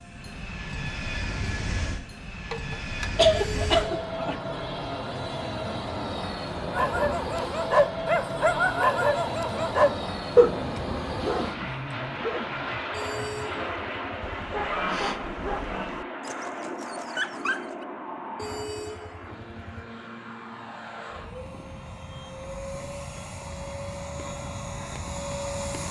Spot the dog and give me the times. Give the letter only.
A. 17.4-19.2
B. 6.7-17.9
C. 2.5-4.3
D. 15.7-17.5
B.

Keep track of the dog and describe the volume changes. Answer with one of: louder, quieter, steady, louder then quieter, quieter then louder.
quieter.